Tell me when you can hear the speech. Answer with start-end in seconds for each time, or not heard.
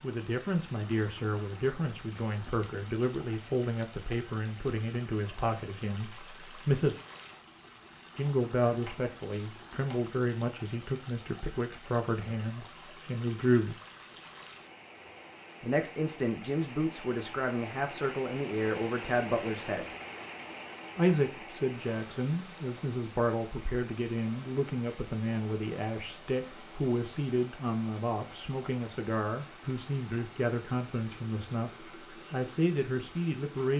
0.0-7.0, 8.2-13.8, 15.6-19.9, 20.9-33.7.